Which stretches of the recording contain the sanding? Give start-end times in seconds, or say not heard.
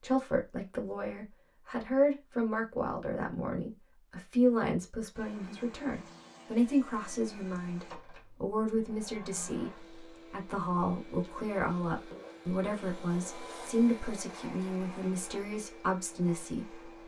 not heard.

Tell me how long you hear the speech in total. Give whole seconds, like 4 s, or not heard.
17 s.